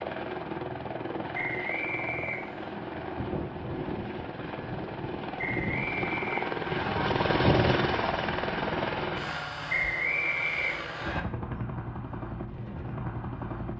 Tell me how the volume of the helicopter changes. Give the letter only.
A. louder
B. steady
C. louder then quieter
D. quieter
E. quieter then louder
C.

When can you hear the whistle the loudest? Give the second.
10 s.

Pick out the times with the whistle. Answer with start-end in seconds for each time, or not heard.
1.3-2.8, 5.3-6.9, 9.7-11.2.